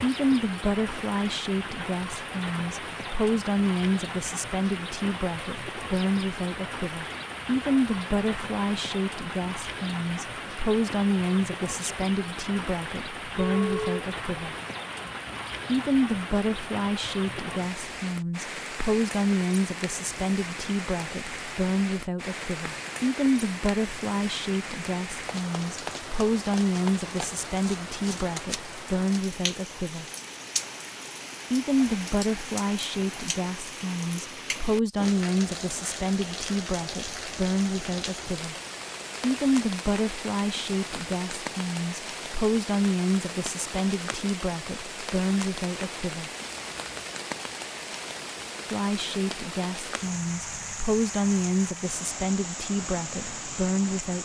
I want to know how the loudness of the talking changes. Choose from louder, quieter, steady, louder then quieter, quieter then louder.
steady.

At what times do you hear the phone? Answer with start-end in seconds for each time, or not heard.
not heard.